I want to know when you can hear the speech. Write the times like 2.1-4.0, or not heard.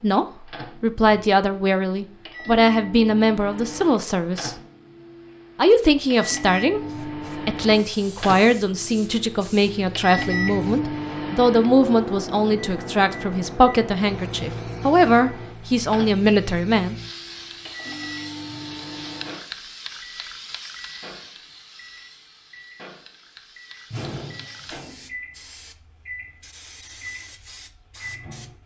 0.0-4.5, 5.5-16.9.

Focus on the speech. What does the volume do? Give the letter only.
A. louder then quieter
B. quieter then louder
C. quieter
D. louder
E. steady
E.